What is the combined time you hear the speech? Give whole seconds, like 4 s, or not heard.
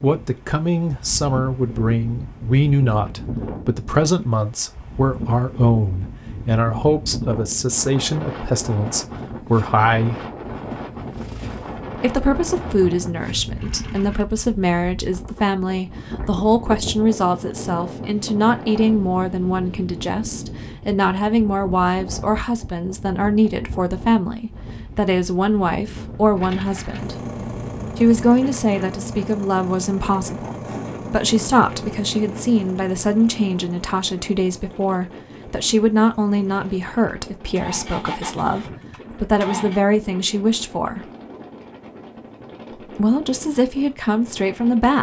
41 s.